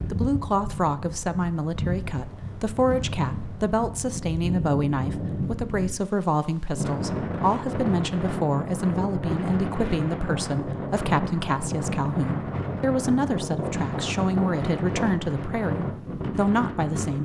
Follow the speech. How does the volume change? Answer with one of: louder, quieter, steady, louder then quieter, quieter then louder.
steady.